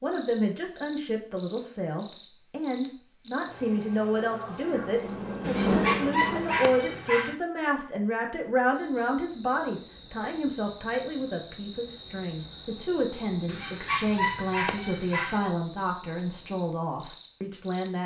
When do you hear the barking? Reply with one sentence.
The barking can be heard from 5.4 to 7.3 s and from 13.4 to 15.4 s.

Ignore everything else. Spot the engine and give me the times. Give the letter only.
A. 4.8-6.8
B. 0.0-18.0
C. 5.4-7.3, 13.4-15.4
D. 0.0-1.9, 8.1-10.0
A.